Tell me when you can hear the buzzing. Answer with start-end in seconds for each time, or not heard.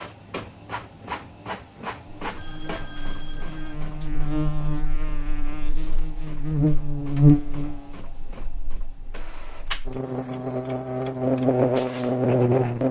2.2-12.8.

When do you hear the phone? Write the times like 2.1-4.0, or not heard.
2.4-3.8.